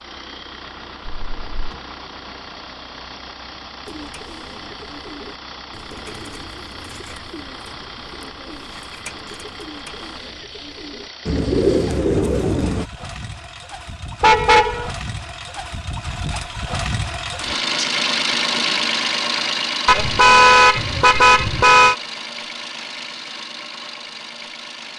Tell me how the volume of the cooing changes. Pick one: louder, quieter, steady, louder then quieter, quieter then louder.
louder.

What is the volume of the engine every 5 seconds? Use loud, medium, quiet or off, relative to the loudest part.
quiet, quiet, quiet, loud, medium.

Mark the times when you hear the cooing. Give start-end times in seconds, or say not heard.
3.9-12.9.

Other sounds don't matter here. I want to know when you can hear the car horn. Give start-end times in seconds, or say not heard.
1.1-1.8, 14.2-14.9, 19.9-21.9.